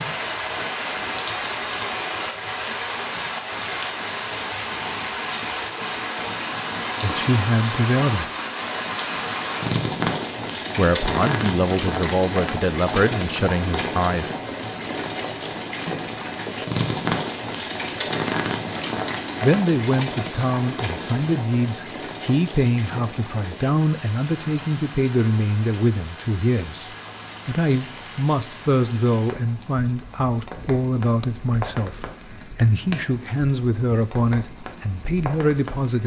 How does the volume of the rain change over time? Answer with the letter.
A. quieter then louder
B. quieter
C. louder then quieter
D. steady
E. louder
B.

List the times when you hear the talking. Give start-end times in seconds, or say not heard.
7.0-8.3, 10.8-14.3, 19.4-26.9, 27.4-36.0.